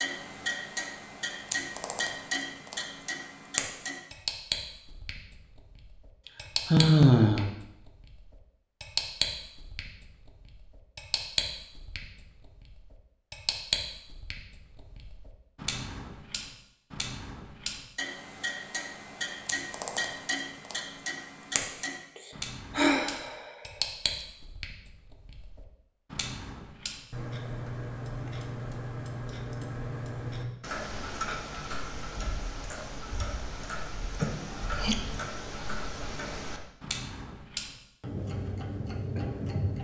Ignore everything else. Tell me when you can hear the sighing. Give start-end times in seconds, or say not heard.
6.7-7.5, 22.1-23.5, 34.2-35.0.